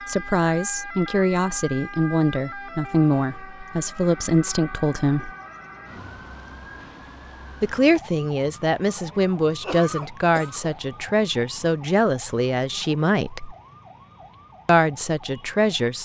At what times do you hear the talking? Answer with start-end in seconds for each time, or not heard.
0.1-5.3, 7.6-13.6, 14.7-15.9.